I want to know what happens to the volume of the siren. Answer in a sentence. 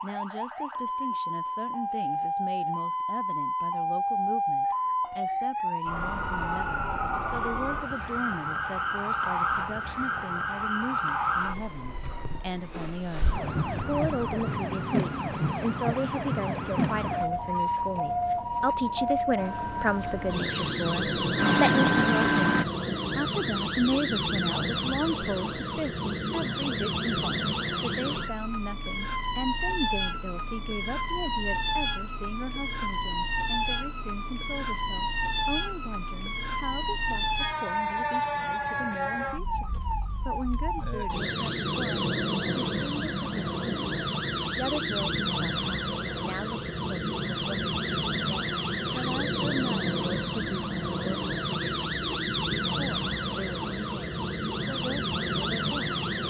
The volume of the siren stays about the same.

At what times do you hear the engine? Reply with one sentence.
You can hear the engine from 19.4 to 22.6 s.